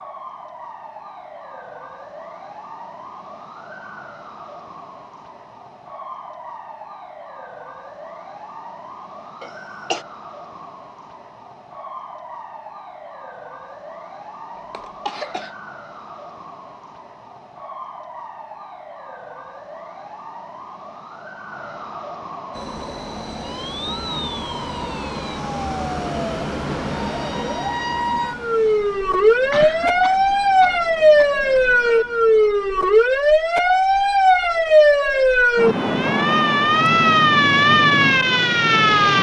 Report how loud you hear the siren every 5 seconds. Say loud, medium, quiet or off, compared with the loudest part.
quiet, quiet, quiet, quiet, quiet, medium, loud, loud.